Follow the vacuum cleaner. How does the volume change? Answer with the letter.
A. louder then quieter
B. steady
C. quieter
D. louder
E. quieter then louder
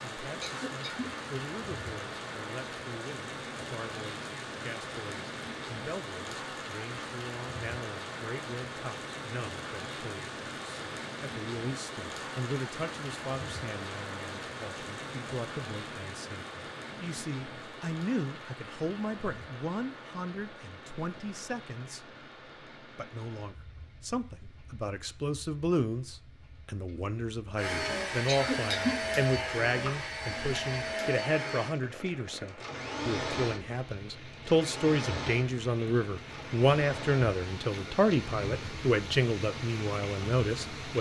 C.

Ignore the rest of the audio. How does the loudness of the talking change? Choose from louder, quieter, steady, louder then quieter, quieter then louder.
louder.